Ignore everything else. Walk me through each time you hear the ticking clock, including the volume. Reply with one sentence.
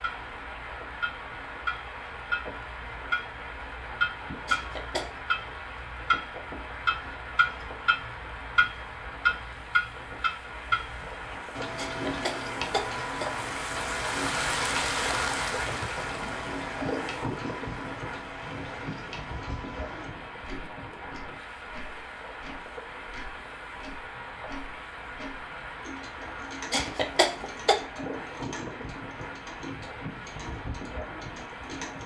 You can hear the ticking clock from 0.0 to 32.0 s, getting quieter.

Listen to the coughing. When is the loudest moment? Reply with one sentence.
The loudest moment of the coughing is at 27 seconds.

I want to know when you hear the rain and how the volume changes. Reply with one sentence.
You can hear the rain from 0.0 to 32.0 s, getting louder then quieter.